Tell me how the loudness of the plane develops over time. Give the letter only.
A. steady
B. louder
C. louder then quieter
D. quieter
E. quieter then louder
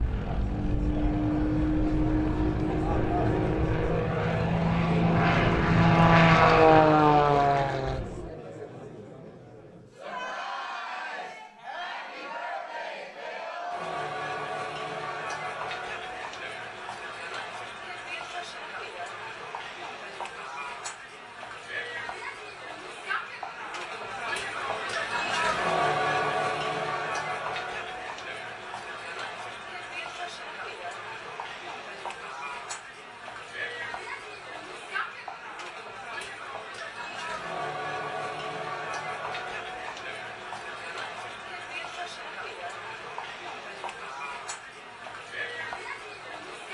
B.